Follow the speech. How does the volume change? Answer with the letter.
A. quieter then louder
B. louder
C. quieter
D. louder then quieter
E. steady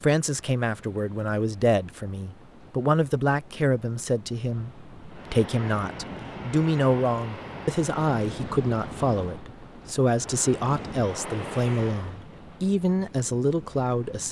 E.